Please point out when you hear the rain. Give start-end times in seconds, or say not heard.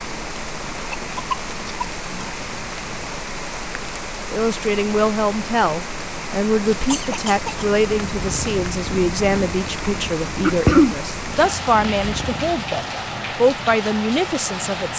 0.0-14.9.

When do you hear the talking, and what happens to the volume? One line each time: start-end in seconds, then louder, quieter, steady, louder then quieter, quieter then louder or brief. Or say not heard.
4.3-14.9 steady.